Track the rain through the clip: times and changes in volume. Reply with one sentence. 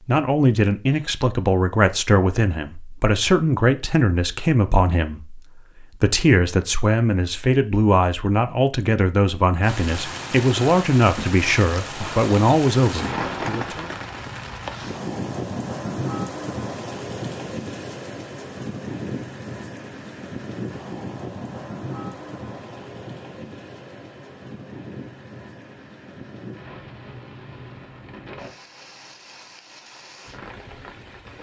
The rain can be heard from 9.6 to 31.3 s, getting quieter.